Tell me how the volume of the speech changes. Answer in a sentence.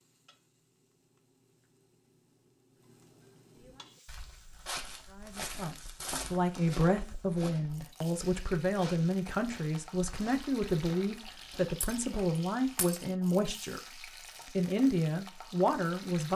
The volume of the speech stays about the same.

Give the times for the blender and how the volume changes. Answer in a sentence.
You can't hear the blender here.